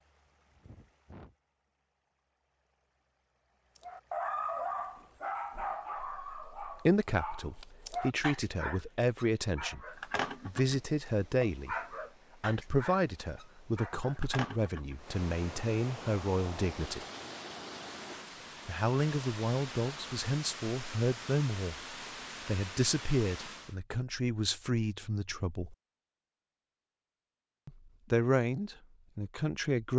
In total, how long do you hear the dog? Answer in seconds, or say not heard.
11 s.